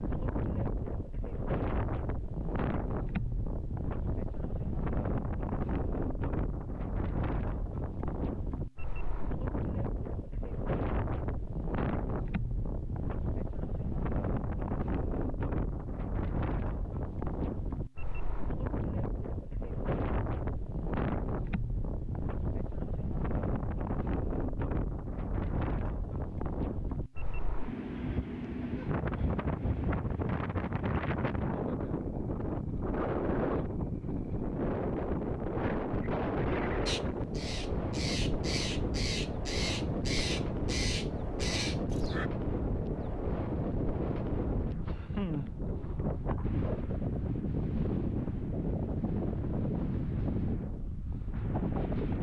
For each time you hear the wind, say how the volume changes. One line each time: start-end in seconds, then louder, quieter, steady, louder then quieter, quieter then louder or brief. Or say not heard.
0.0-52.1 steady.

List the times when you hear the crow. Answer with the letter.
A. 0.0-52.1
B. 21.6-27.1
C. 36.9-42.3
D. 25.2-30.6
C.